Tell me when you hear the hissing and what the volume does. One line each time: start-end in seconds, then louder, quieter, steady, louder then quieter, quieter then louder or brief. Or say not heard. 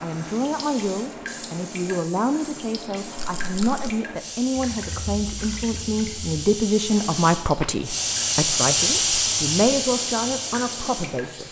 0.0-11.4 louder.